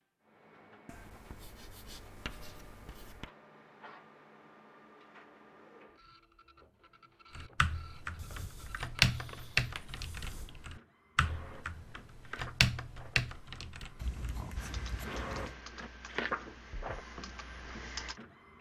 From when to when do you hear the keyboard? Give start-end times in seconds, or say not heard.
7.3-18.2.